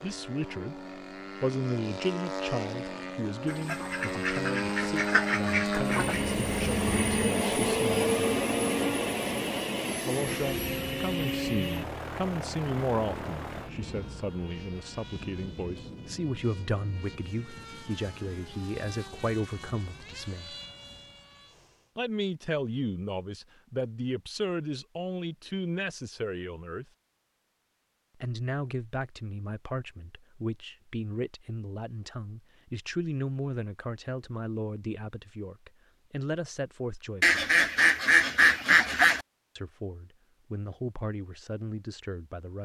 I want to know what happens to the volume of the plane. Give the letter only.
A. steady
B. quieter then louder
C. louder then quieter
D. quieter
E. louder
C.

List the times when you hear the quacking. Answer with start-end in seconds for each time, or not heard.
3.5-6.2, 37.2-39.2.